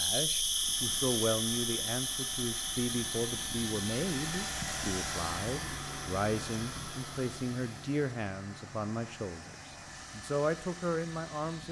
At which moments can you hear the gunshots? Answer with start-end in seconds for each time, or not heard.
not heard.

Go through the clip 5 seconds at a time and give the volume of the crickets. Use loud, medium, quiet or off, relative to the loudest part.
loud, quiet, off.